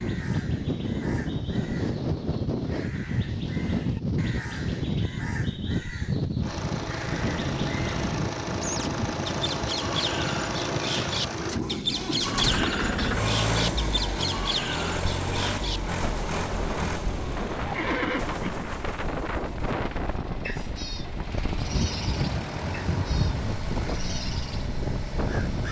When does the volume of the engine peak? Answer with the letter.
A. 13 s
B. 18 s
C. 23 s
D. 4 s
A.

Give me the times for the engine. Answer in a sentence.
You can hear the engine from 6.4 to 25.6 s.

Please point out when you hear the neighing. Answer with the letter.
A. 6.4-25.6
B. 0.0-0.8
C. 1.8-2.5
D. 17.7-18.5
D.